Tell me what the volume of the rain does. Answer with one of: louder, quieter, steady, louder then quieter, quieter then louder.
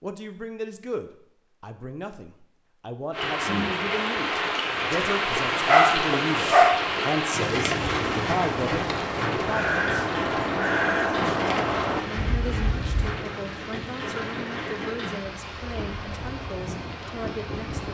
quieter.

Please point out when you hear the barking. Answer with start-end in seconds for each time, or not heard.
5.7-6.8.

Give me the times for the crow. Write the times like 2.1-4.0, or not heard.
7.8-13.2.